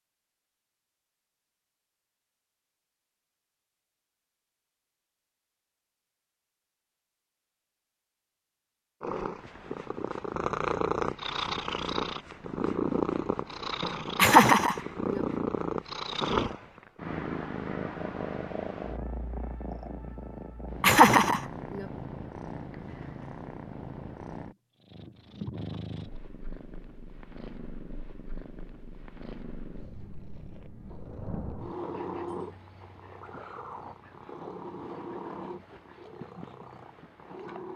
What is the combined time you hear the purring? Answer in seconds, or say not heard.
29 s.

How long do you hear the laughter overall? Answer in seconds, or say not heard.
2 s.